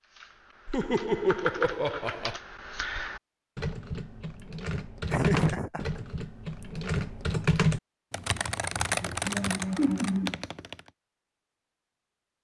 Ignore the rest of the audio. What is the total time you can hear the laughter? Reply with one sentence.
You can hear the laughter for 4 seconds altogether.